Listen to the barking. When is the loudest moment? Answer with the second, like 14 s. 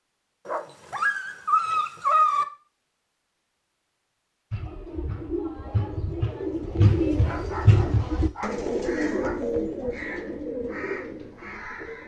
2 s.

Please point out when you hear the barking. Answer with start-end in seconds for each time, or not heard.
0.5-2.5, 7.2-9.4.